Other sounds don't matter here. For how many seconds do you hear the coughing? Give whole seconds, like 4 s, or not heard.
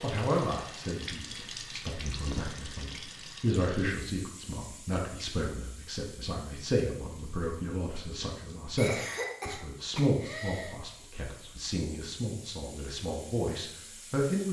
2 s.